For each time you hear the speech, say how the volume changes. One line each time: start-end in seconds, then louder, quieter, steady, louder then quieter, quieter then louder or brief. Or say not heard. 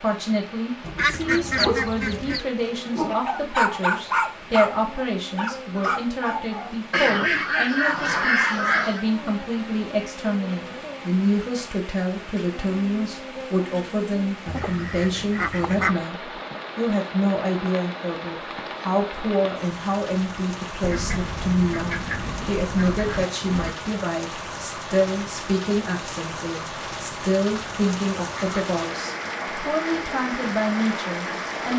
0.0-31.7 steady.